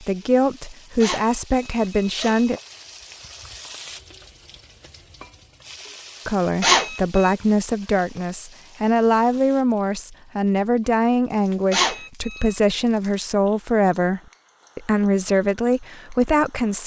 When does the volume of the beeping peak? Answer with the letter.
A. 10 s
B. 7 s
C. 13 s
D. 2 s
B.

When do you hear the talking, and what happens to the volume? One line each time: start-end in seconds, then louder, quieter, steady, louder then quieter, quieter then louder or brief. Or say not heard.
0.0-2.6 brief
6.2-16.8 steady.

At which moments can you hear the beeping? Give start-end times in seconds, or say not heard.
1.0-2.6, 6.6-7.3, 11.7-12.6.